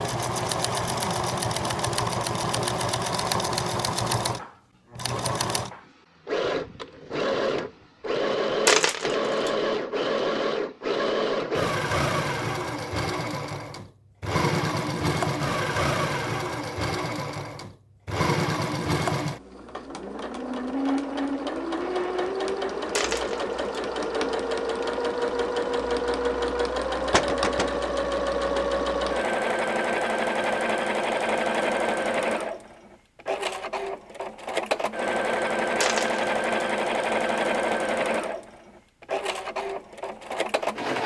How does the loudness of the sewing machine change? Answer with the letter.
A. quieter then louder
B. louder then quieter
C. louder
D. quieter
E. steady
E.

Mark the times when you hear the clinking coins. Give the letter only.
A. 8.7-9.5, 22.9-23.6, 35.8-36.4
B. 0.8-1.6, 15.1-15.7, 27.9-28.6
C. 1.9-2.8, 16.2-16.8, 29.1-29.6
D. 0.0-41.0
A.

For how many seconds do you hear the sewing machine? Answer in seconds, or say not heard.
41 s.